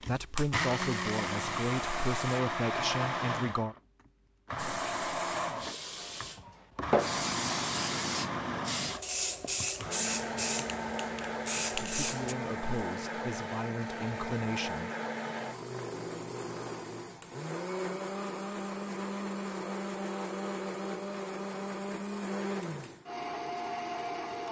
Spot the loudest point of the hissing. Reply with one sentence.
The loudest moment of the hissing is at 7 seconds.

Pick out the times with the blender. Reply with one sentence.
The blender can be heard from 0.0 to 24.4 s.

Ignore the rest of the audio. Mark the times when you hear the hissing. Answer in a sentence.
The hissing can be heard from 0.1 to 2.4 s and from 4.5 to 12.3 s.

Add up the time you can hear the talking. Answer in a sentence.
The talking can be heard for 7 seconds in total.